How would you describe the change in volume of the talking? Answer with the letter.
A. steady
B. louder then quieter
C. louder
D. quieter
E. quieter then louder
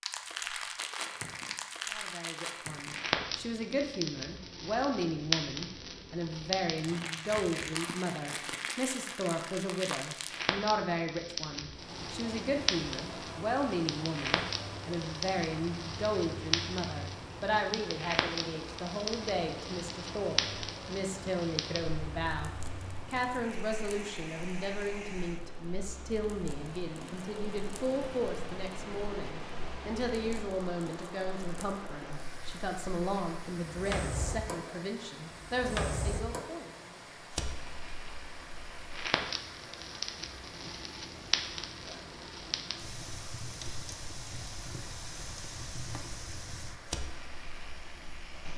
A.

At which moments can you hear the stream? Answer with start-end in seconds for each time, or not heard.
11.7-48.5.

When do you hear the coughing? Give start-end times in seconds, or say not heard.
not heard.